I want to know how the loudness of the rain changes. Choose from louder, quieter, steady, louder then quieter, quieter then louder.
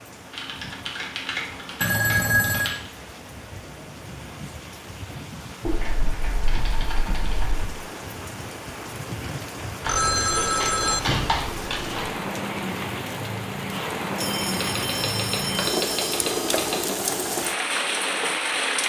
louder.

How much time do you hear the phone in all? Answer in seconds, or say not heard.
5 s.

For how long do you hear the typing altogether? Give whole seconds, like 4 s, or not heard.
9 s.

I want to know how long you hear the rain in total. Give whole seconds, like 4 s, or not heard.
19 s.